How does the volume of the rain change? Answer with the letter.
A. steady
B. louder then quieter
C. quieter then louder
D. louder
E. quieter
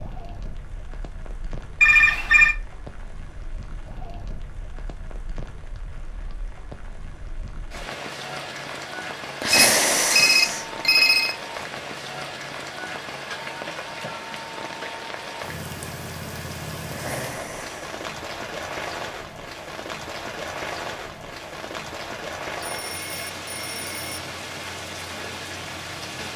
D.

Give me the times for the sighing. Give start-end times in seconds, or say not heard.
9.4-10.7, 16.9-17.9.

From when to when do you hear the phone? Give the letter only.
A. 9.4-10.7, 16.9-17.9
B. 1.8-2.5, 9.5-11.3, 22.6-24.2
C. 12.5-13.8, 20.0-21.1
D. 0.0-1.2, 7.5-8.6
B.